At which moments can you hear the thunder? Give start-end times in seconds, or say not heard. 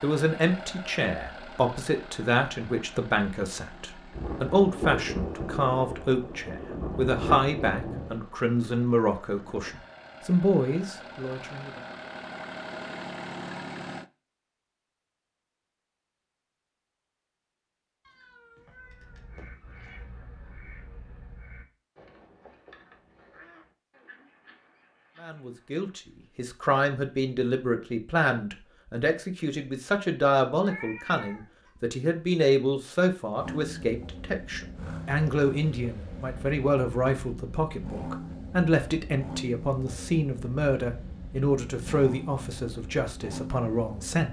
4.1-8.2.